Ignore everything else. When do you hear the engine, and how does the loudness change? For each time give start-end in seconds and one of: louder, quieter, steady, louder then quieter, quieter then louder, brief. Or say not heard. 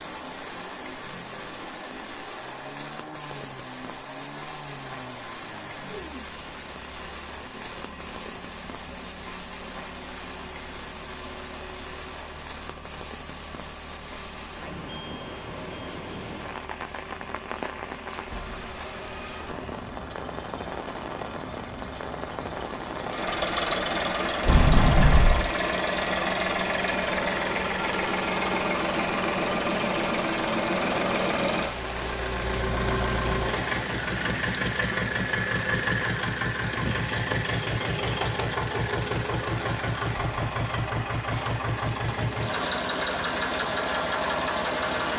0.0-45.1 louder.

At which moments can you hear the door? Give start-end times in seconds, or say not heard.
24.4-25.5.